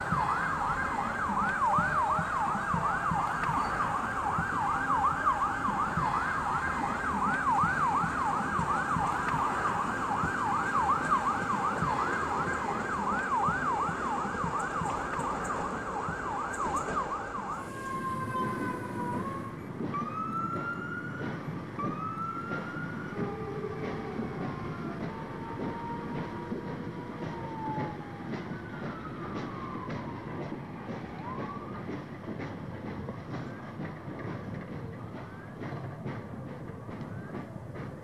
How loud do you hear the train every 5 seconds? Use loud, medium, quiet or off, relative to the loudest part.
medium, loud, loud, loud, loud, loud, loud, loud.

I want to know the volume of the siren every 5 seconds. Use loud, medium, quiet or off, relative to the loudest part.
loud, loud, loud, medium, medium, quiet, quiet, quiet.